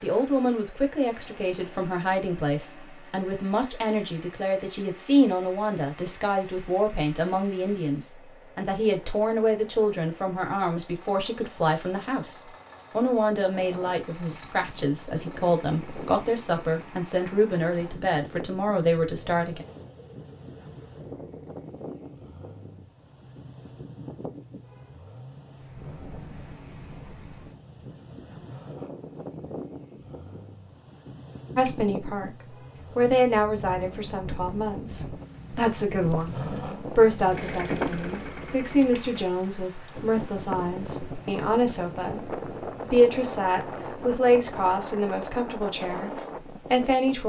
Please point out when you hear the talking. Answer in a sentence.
The talking can be heard from 0.0 to 19.6 s, from 31.6 to 32.3 s, from 33.0 to 46.1 s and from 46.7 to 47.2 s.